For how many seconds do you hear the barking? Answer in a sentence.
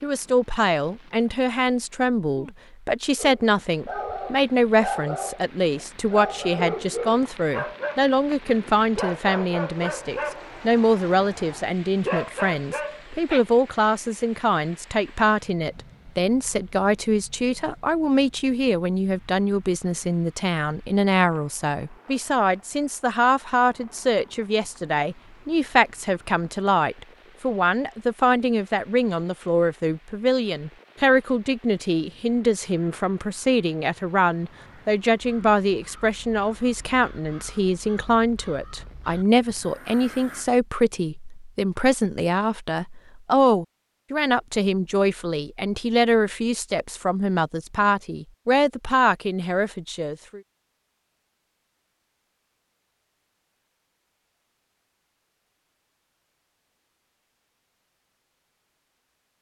You can hear the barking for 10 seconds altogether.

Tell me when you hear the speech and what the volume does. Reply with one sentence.
The speech can be heard from 0.0 to 50.4 s, at a steady volume.